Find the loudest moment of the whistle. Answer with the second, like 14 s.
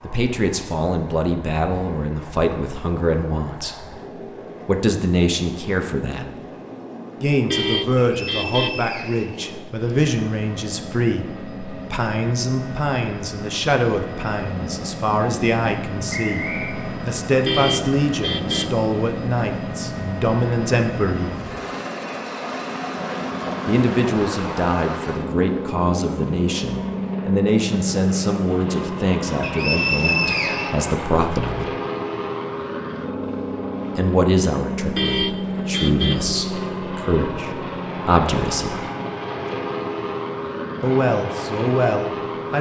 30 s.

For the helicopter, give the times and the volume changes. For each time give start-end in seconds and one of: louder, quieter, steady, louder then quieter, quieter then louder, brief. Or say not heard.
0.0-42.5 louder.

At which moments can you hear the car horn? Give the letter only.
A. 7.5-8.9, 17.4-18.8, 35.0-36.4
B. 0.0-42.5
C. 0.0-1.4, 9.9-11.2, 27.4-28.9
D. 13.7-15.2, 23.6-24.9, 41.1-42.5
A.